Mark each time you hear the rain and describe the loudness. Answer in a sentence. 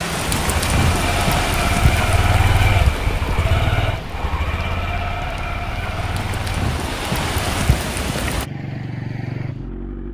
You can hear the rain from 0.0 to 8.4 s, getting quieter then louder.